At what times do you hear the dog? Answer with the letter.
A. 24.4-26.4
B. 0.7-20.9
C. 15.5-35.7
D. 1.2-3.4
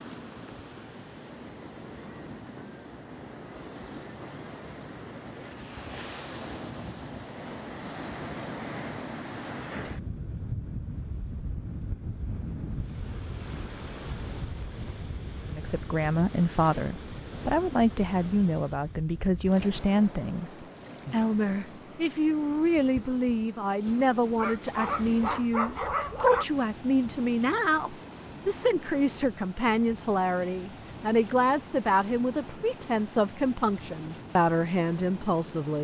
A.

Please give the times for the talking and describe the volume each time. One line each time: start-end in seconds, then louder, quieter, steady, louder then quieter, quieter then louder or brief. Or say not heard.
15.5-35.7 steady.